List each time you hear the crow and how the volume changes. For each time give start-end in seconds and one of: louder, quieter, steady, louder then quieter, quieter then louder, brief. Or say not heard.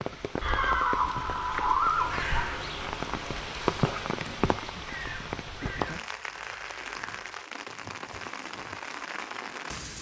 1.8-7.3 quieter.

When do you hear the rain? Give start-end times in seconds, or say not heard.
0.0-9.9.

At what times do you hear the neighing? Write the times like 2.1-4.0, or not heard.
0.4-2.5.